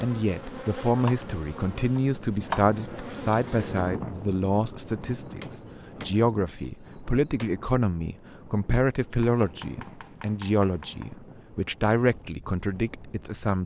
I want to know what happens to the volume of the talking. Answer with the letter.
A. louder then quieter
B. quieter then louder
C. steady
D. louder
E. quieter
C.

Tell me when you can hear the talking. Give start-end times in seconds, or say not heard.
0.0-13.6.